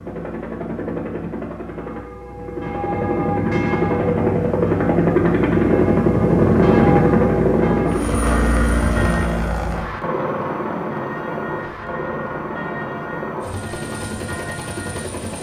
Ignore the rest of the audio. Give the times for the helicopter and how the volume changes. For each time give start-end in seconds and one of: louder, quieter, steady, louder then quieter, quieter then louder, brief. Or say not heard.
0.0-15.3 louder then quieter.